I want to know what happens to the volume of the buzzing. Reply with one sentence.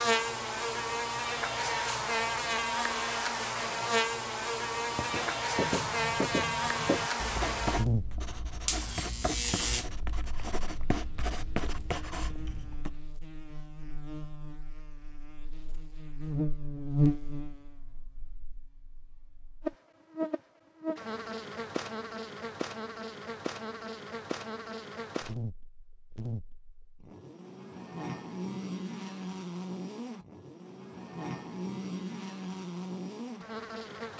The loudness of the buzzing goes down.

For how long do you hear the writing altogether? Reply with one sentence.
The writing can be heard for 8 seconds in total.